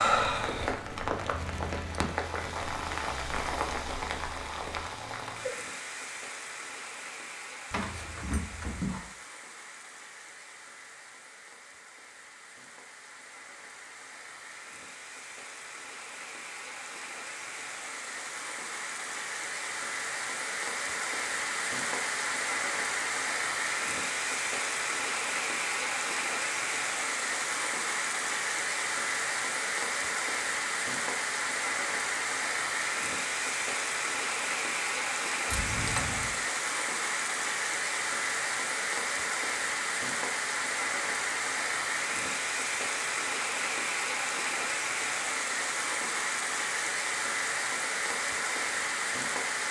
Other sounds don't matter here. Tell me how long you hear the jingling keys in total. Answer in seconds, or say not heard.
2 s.